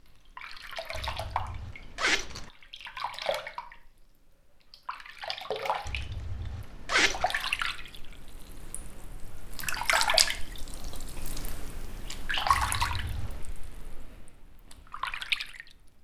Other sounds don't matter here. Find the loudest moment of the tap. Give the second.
10 s.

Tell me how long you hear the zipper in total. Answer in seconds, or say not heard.
4 s.